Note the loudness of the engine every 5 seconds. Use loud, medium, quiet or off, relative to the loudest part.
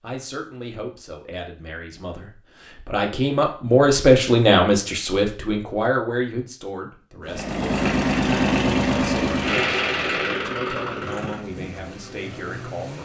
off, loud, medium.